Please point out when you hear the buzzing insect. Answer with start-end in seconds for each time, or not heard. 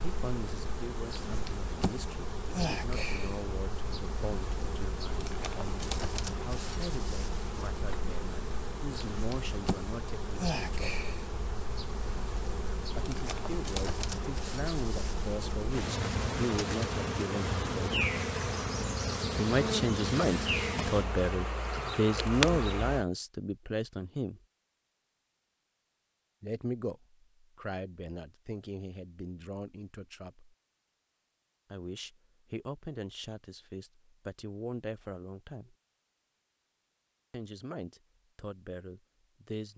0.0-23.1.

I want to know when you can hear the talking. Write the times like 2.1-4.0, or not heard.
0.0-10.8, 12.9-18.1, 19.4-24.4, 26.4-30.6, 31.7-35.8, 37.3-39.7.